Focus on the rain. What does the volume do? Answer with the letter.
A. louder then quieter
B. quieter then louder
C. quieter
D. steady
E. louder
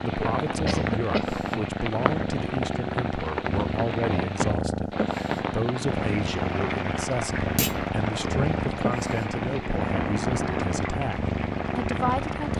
D.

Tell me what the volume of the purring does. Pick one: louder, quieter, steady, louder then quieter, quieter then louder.
steady.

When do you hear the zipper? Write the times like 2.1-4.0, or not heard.
not heard.